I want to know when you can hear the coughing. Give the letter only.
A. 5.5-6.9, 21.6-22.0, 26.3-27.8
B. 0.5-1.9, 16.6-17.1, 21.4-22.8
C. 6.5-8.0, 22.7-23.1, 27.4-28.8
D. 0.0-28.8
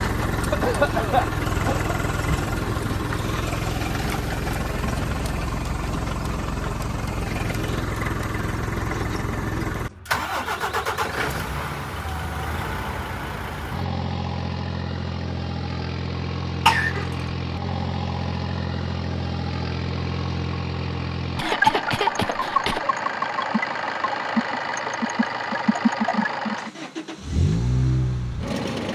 B.